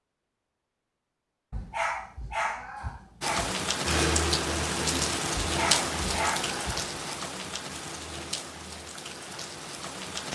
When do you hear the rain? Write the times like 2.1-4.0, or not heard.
3.2-10.3.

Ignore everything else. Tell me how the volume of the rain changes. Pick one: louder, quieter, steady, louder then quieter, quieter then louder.
quieter.